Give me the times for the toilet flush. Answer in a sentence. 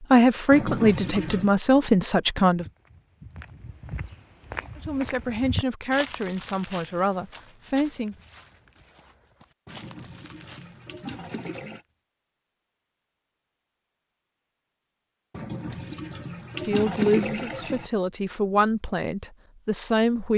You can hear the toilet flush from 0.5 to 1.6 s, from 9.7 to 11.8 s and from 15.3 to 17.9 s.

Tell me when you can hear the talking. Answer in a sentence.
You can hear the talking from 0.0 to 2.6 s, from 4.8 to 8.2 s and from 16.6 to 20.3 s.